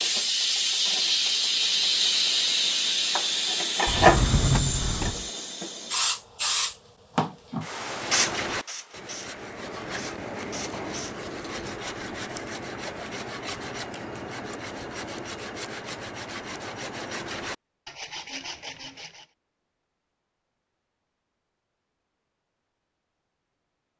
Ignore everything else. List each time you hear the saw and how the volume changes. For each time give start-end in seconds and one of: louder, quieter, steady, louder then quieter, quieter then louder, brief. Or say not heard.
7.7-19.2 steady.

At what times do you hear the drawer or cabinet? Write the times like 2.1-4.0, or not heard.
3.9-5.3.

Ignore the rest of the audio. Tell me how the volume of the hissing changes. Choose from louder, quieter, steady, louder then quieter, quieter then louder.
quieter.